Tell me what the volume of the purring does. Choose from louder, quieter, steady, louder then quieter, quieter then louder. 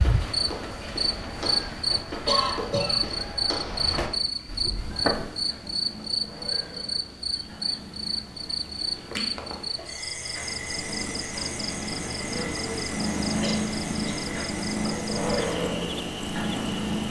louder.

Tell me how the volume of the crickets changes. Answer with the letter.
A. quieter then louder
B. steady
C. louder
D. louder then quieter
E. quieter
E.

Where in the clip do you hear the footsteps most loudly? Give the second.
5 s.